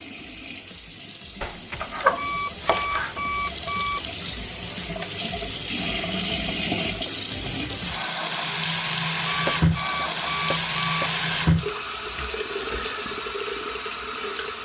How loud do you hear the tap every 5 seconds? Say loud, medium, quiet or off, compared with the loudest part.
medium, loud, loud.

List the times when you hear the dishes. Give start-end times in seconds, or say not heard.
not heard.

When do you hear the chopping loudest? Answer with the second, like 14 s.
2 s.